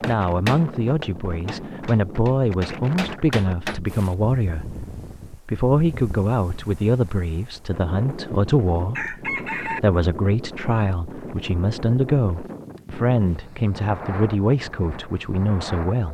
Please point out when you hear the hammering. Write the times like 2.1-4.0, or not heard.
0.0-3.8.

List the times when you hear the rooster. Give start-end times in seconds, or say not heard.
8.0-9.8.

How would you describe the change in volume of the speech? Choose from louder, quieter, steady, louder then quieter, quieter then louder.
steady.